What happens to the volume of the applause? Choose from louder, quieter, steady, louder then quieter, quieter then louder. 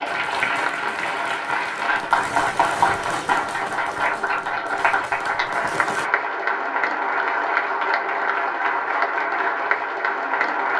steady.